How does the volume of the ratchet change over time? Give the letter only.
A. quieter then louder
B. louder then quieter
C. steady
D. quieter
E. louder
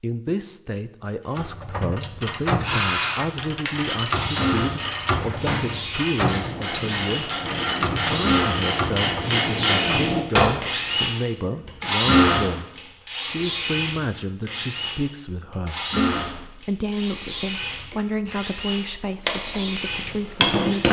C.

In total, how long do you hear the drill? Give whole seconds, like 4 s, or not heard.
18 s.